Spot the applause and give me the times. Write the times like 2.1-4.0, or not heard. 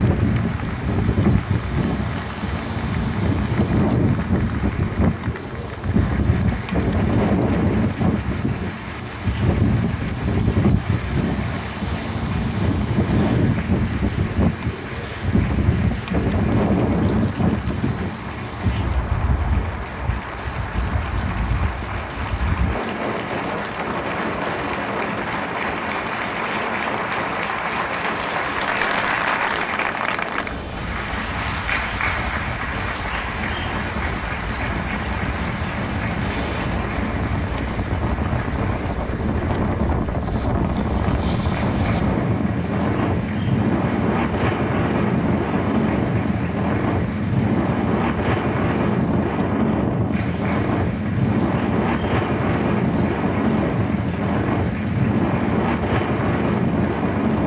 0.0-57.4.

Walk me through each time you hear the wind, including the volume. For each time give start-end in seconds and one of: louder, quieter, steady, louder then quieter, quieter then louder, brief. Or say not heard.
0.0-57.4 quieter then louder.